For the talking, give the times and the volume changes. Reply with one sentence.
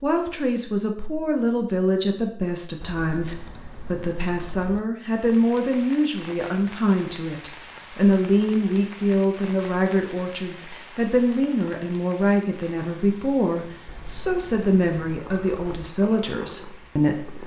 You can hear the talking from 0.0 to 17.4 s, at a steady volume.